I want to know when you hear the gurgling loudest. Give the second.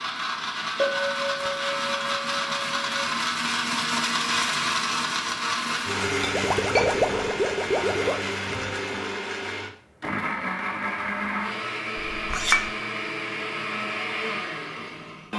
7 s.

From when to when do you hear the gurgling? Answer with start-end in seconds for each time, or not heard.
6.3-8.8.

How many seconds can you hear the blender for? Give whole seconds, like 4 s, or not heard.
15 s.